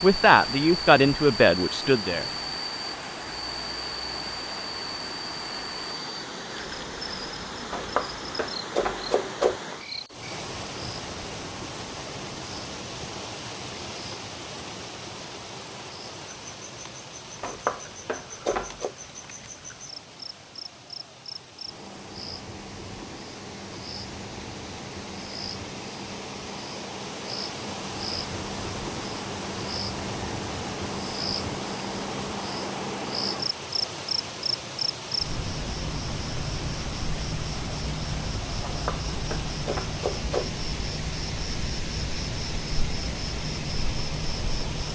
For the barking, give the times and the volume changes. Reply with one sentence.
You can't hear the barking here.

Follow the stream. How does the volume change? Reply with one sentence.
The loudness of the stream goes down, then up.